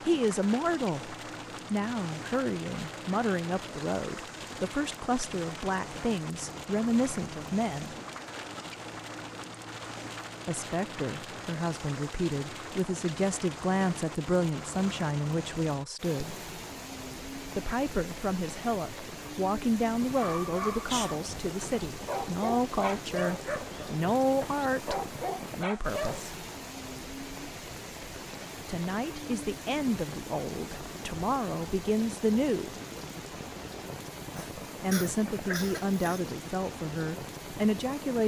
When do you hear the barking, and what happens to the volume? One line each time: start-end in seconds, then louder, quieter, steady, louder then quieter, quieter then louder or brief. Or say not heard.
20.1-26.2 quieter then louder.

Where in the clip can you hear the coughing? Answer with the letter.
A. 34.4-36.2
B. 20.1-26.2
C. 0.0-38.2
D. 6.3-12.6
A.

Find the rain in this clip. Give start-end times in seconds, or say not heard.
0.0-38.2.